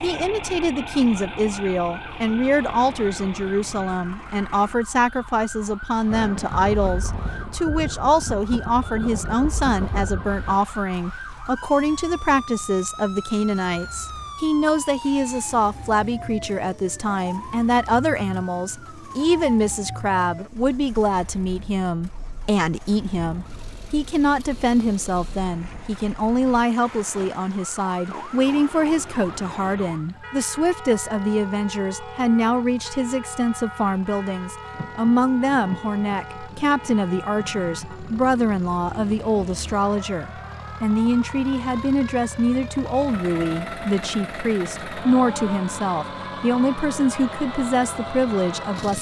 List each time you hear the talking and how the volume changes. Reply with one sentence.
The talking can be heard from 0.0 to 48.9 s, at a steady volume.